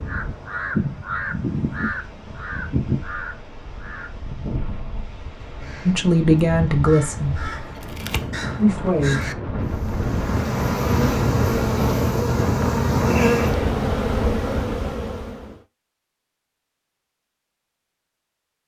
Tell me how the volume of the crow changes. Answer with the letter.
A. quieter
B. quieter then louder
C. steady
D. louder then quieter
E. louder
B.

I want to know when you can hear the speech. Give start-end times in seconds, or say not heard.
5.8-7.4, 8.6-9.3.